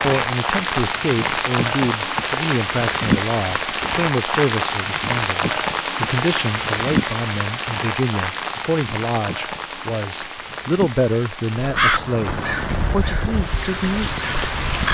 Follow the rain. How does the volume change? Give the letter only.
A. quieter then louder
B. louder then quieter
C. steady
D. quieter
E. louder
D.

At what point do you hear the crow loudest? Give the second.
12 s.